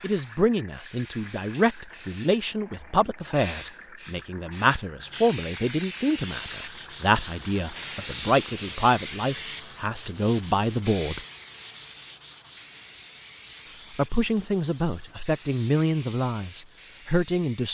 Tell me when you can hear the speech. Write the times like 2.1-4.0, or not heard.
0.0-11.2, 13.9-17.7.